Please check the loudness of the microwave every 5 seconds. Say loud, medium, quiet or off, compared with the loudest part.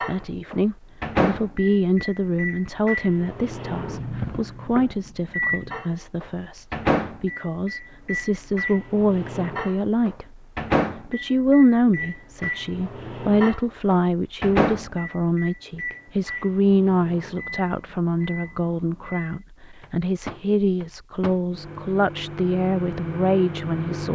loud, loud, loud, medium, medium.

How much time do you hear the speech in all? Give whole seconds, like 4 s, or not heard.
23 s.